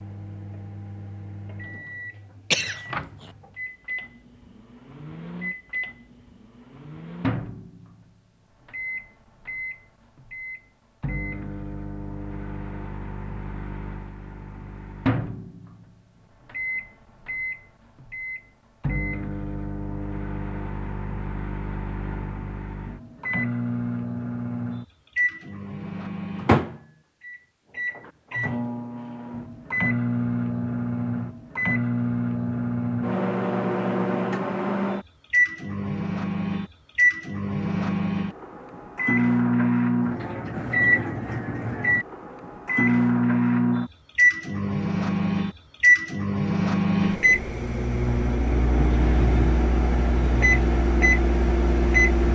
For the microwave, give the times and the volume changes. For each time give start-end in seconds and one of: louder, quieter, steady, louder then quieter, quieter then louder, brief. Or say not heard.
0.0-52.3 louder.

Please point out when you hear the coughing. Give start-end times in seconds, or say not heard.
2.5-3.3.